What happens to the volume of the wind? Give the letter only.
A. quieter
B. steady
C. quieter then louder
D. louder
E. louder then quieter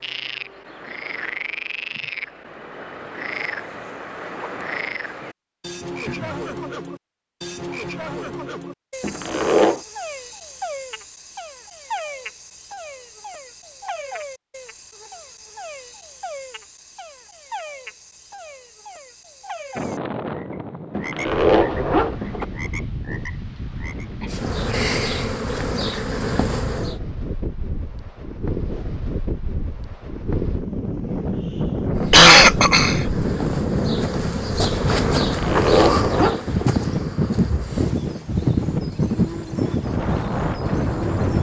D.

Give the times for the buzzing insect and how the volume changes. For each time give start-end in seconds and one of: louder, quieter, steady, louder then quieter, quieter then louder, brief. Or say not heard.
24.3-26.9 brief
31.9-41.3 louder then quieter.